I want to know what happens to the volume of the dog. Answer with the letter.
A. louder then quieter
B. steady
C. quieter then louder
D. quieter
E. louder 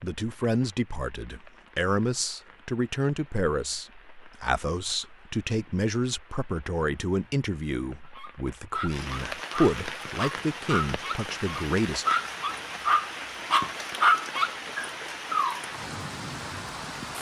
E.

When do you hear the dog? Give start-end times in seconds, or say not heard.
8.2-15.7.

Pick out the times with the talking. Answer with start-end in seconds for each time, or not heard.
0.0-12.1.